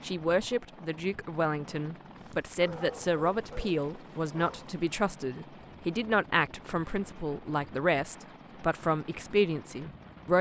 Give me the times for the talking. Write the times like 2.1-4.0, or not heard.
0.0-10.3.